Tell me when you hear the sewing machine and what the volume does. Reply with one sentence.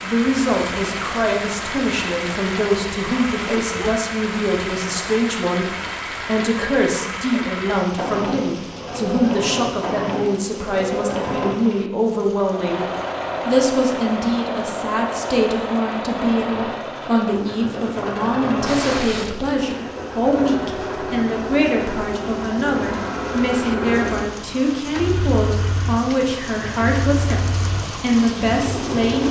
The sewing machine can be heard from 0.0 to 29.2 s, at a steady volume.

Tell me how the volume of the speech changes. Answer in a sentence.
The loudness of the speech stays about the same.